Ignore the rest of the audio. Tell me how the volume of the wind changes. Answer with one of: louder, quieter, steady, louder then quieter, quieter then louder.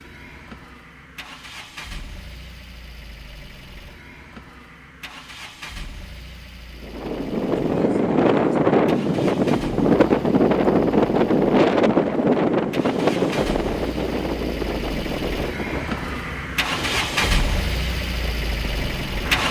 quieter.